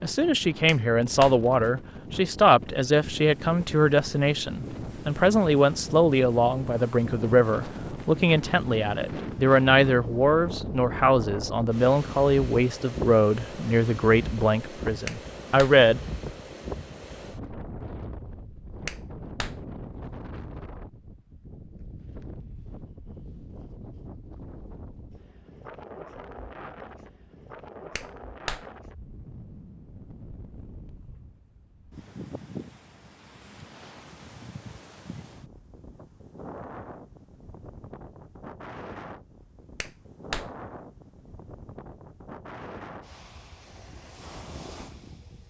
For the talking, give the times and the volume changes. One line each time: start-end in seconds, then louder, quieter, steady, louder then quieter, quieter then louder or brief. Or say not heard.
0.0-16.0 steady.